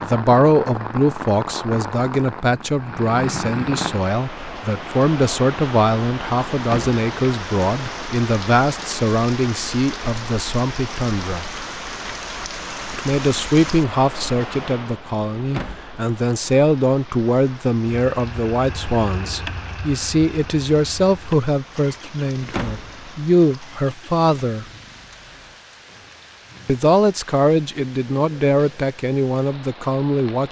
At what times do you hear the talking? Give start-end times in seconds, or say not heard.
0.0-11.5, 12.8-24.6, 26.6-30.4.